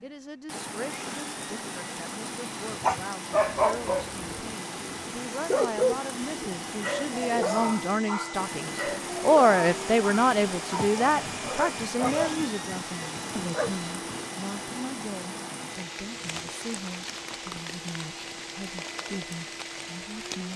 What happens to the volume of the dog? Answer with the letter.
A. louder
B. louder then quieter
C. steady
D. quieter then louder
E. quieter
E.